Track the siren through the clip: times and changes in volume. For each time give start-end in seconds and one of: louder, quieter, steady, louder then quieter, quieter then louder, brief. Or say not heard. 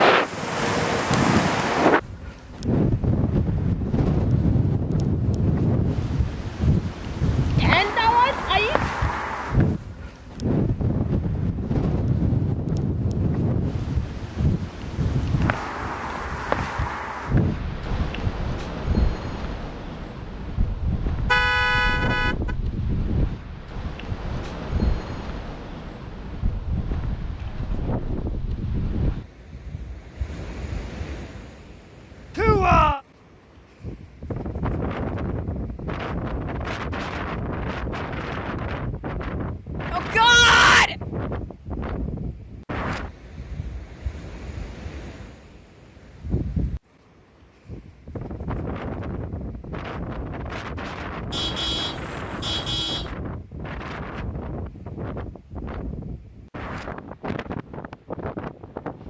not heard.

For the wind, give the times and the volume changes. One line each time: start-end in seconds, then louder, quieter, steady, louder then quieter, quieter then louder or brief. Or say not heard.
0.0-59.0 quieter.